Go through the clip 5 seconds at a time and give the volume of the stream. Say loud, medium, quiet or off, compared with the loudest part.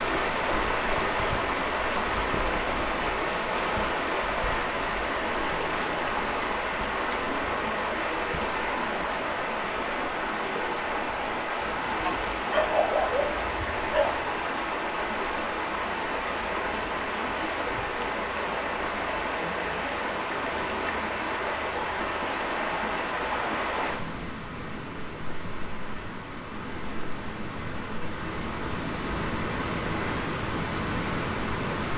loud, loud, loud, loud, loud, medium, loud.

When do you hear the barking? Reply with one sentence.
You can hear the barking from 11.6 to 14.2 s.